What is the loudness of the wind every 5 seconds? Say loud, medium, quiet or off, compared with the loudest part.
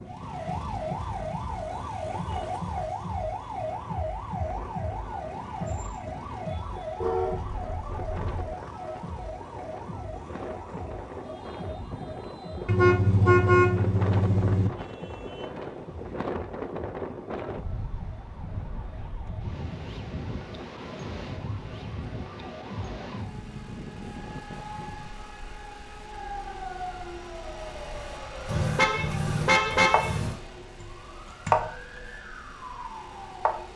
medium, medium, loud, loud, loud, quiet, quiet.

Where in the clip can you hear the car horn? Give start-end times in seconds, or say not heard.
7.0-8.3, 12.7-14.7, 28.4-30.4.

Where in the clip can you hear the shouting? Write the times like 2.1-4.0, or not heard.
not heard.